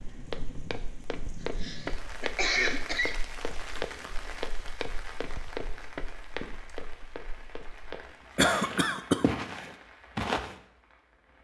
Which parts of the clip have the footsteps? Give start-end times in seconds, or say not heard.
0.1-10.6.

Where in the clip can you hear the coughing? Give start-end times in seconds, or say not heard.
1.4-3.1, 8.3-9.2.